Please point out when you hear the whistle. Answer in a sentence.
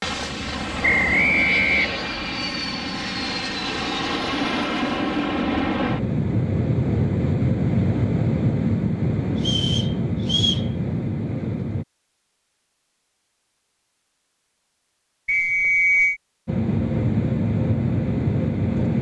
You can hear the whistle from 0.8 to 2.1 s, from 9.4 to 10.7 s and from 15.2 to 16.2 s.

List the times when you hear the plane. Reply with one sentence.
You can hear the plane from 0.0 to 11.8 s and from 16.4 to 18.9 s.